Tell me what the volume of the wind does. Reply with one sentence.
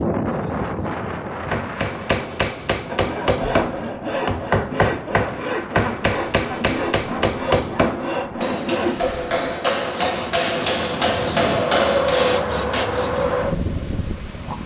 The volume of the wind goes down, then up.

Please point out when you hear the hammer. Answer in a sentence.
The hammer can be heard from 1.5 to 12.9 s.